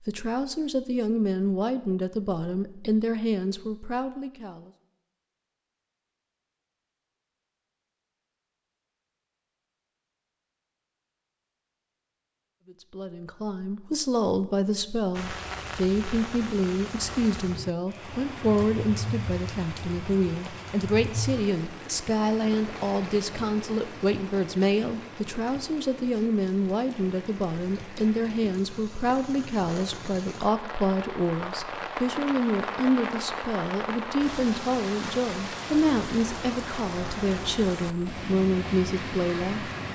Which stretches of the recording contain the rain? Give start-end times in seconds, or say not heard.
15.1-39.9.